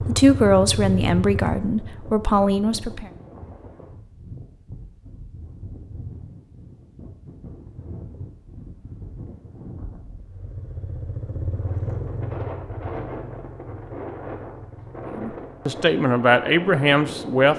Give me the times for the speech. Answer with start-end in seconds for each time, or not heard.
0.0-3.1, 15.1-17.5.